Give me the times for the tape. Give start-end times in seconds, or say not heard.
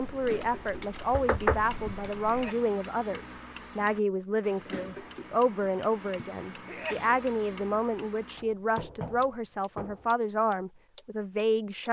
not heard.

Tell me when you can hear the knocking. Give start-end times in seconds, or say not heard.
1.1-2.1, 8.3-10.2.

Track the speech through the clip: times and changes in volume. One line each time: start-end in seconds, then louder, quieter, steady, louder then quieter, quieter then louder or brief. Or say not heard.
0.0-11.8 steady.